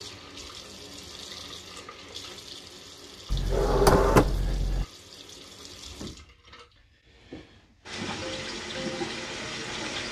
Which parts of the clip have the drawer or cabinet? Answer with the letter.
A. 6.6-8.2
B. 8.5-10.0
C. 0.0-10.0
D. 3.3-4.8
D.